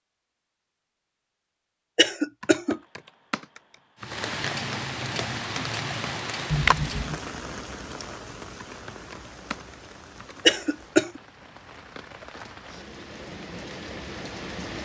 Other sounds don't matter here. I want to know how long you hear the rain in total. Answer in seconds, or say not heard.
11 s.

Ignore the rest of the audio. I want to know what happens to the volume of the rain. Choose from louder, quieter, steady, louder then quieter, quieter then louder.
quieter then louder.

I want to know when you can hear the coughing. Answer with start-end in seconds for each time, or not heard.
1.9-2.8, 6.5-7.2, 10.4-11.2.